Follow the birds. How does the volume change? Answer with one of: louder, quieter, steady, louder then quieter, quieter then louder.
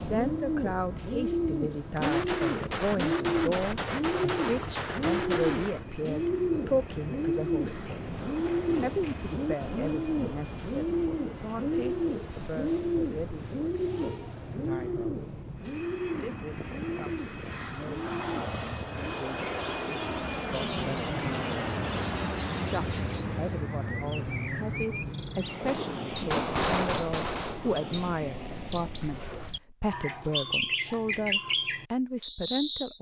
quieter then louder.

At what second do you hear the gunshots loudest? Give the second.
27 s.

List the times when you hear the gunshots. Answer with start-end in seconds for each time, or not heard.
1.9-5.8, 25.6-27.6.